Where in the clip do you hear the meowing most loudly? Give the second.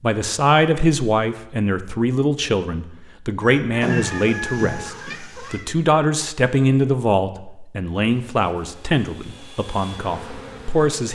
4 s.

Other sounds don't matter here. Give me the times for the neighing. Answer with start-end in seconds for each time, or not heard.
not heard.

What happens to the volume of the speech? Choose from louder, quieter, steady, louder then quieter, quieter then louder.
quieter.